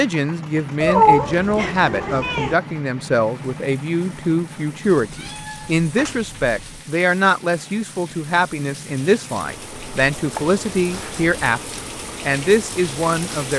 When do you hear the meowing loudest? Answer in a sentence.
The loudest moment of the meowing is at 1 second.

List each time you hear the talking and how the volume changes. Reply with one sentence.
You can hear the talking from 0.0 to 13.5 s, at a steady volume.